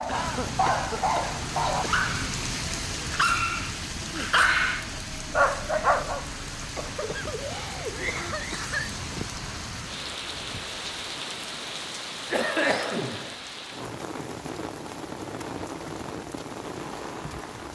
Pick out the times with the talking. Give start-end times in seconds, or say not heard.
not heard.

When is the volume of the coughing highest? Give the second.
13 s.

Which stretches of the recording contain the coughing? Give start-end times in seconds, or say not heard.
0.1-2.1, 6.6-9.2, 12.3-13.3.